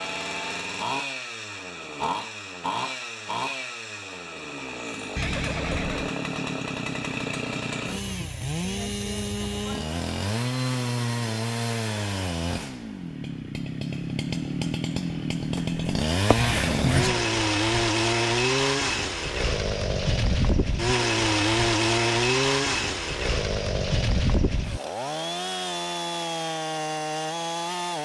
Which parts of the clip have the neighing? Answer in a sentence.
The neighing can be heard from 5.2 to 6.1 s and from 16.4 to 17.3 s.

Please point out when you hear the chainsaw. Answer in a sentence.
You can hear the chainsaw from 0.0 to 28.0 s.